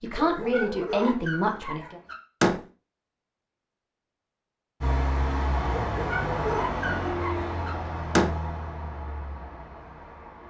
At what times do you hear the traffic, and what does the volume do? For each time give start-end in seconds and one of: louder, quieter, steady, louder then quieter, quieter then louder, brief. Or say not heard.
4.8-10.4 quieter.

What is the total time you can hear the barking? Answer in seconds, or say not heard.
4 s.